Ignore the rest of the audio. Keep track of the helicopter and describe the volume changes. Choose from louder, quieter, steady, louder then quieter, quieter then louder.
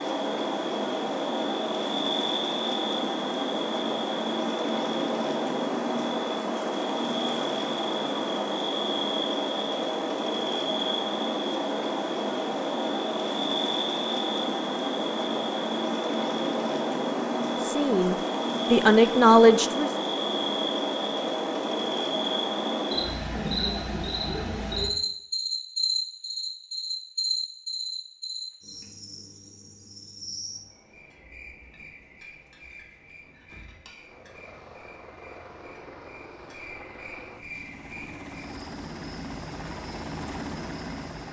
louder.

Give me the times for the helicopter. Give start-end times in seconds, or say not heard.
33.9-41.2.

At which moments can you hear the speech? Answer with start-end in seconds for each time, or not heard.
17.6-19.9.